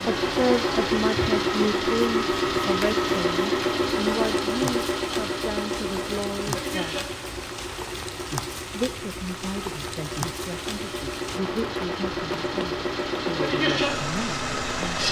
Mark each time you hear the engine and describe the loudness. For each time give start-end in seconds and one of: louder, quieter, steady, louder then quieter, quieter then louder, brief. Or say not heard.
0.0-15.0 quieter then louder.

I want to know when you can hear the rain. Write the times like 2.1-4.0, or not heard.
0.0-15.0.